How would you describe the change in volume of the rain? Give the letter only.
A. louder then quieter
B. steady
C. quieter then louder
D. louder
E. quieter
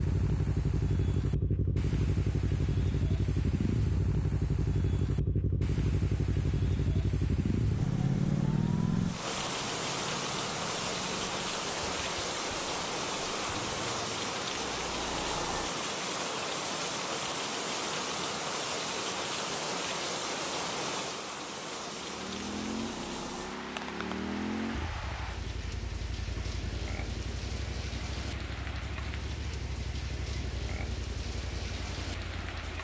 A.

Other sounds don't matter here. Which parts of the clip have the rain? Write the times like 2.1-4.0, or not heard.
0.0-32.8.